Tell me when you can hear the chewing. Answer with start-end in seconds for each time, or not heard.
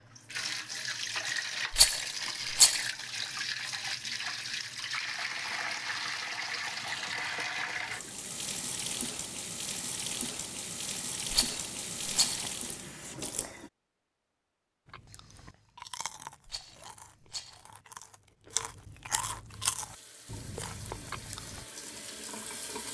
14.8-21.6.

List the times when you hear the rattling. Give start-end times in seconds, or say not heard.
1.7-2.9, 11.3-12.5, 16.4-17.6.